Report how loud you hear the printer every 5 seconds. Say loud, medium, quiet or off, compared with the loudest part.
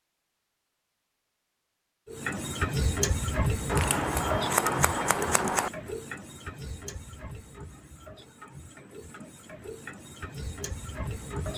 loud, medium, medium.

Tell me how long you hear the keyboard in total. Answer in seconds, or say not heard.
not heard.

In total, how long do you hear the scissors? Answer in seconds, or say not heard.
2 s.